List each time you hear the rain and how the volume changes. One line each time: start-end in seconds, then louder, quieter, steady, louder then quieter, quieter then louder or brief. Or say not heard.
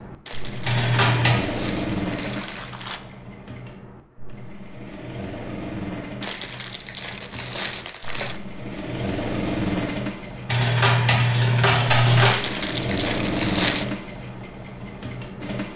not heard.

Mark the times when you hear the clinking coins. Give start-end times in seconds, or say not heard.
0.7-1.4, 10.4-12.3.